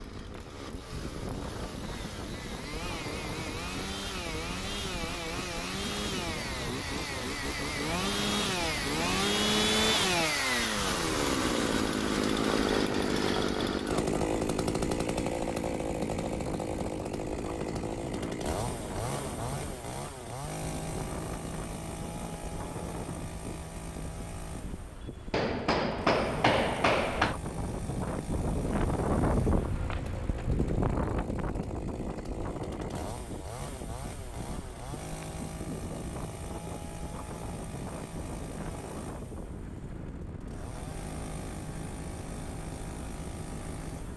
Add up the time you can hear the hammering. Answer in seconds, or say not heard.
2 s.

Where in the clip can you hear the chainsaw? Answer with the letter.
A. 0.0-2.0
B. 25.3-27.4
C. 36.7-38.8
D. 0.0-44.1
D.